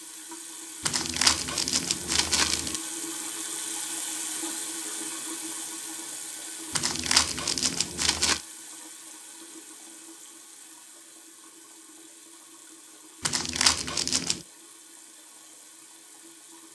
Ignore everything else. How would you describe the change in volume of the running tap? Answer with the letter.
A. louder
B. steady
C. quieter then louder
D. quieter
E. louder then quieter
D.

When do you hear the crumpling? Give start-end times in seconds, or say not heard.
0.8-2.8, 6.8-8.4, 13.2-14.4.